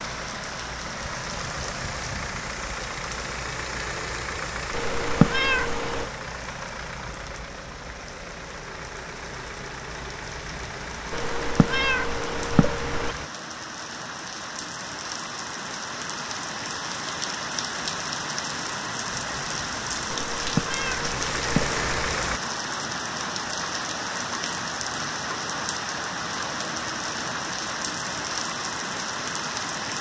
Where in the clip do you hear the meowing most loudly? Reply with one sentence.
The loudest moment of the meowing is at 5 seconds.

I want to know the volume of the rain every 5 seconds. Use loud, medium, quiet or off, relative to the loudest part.
medium, quiet, medium, loud, loud, loud.